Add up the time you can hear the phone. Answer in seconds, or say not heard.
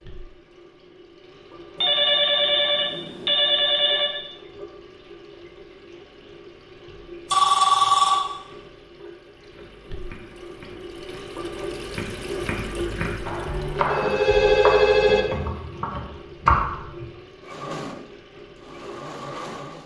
5 s.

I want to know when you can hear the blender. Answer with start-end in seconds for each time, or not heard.
17.4-19.8.